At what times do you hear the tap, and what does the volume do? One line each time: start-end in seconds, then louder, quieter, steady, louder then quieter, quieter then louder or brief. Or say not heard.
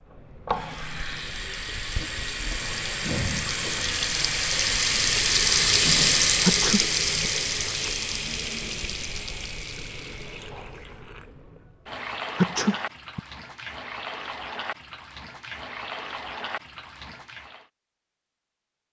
0.0-17.6 louder then quieter.